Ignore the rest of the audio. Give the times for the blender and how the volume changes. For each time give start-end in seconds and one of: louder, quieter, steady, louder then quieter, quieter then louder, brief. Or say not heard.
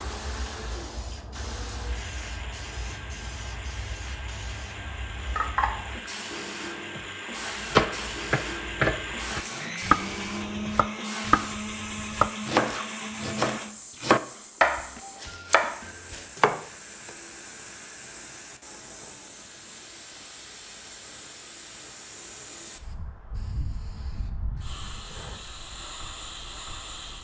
0.0-13.8 louder.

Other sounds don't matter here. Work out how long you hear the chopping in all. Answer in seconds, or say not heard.
9 s.